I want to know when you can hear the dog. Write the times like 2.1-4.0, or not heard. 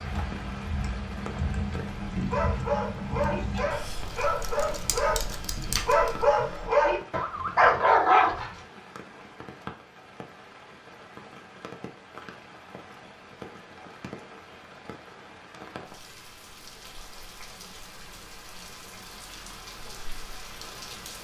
2.1-8.5.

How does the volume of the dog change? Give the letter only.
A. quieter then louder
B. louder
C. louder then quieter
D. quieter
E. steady
B.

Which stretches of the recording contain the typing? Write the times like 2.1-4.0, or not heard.
0.0-6.5.